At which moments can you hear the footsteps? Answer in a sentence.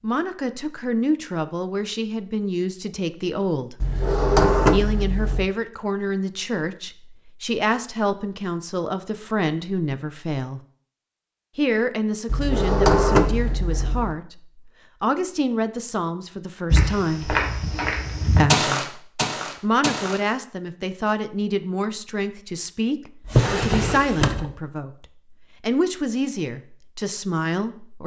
You can hear the footsteps from 16.7 to 20.2 s.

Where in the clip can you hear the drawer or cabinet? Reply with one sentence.
You can hear the drawer or cabinet from 3.8 to 5.5 s, from 12.2 to 14.2 s and from 23.2 to 24.5 s.